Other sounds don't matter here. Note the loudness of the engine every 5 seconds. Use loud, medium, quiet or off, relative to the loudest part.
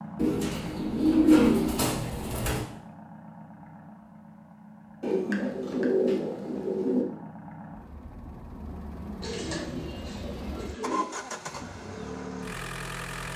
medium, medium, loud.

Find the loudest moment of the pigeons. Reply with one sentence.
The volume of the pigeons peaks at 1 second.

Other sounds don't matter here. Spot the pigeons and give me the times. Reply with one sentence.
The pigeons can be heard from 0.1 to 2.6 s, from 5.0 to 7.0 s and from 9.2 to 11.1 s.